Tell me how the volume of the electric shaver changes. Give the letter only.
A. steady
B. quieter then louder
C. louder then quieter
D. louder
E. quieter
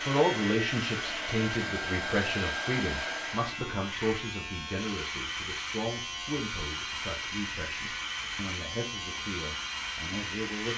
A.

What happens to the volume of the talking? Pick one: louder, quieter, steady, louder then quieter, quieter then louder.
quieter.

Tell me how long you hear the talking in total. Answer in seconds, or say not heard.
11 s.